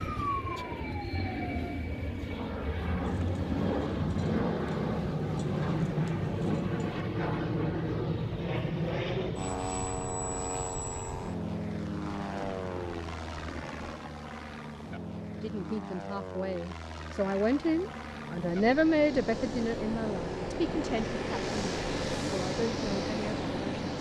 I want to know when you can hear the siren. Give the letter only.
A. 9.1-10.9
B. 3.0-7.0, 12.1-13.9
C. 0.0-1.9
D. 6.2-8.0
C.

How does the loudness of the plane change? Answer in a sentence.
The loudness of the plane goes down, then up.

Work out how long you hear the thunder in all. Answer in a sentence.
You can hear the thunder for 6 seconds altogether.